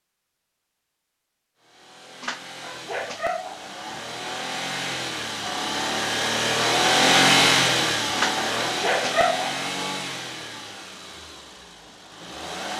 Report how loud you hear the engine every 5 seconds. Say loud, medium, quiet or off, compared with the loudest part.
quiet, loud, quiet.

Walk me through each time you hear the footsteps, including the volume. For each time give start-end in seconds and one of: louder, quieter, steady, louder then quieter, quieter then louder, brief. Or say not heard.
not heard.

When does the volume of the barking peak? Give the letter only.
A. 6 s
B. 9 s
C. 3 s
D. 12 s
B.